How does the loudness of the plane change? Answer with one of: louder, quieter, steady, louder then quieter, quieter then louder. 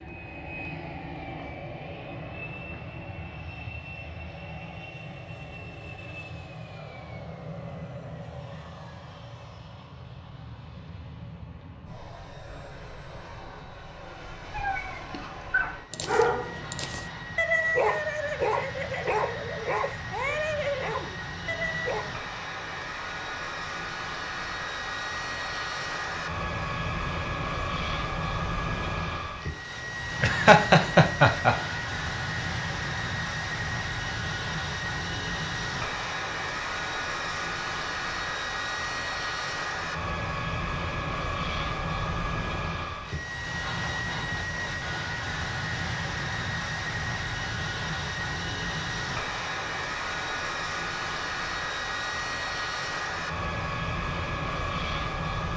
louder.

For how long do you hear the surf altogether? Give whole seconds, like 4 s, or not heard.
not heard.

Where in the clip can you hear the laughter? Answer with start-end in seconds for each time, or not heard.
30.2-31.6.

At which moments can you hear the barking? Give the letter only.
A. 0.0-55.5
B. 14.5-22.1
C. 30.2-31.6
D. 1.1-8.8
B.